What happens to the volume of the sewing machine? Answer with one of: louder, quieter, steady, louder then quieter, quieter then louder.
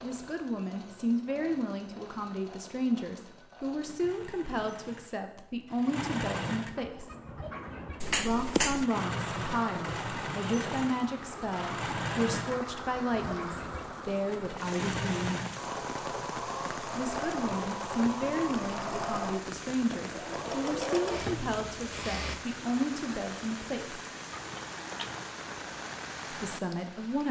louder.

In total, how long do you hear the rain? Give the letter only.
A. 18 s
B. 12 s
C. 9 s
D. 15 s
A.